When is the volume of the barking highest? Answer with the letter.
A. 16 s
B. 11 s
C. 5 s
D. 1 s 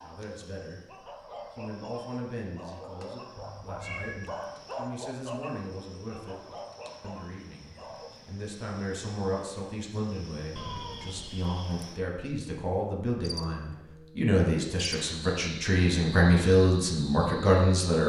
C.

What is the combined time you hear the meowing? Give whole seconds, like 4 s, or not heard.
2 s.